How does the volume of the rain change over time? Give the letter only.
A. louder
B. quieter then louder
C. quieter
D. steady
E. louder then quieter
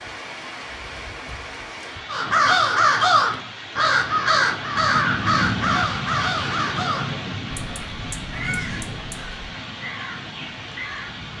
E.